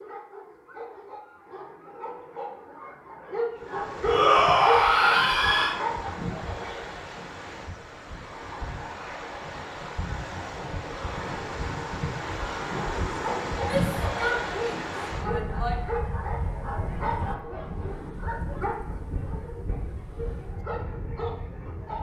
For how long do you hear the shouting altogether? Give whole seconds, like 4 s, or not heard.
4 s.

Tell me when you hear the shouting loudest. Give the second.
4 s.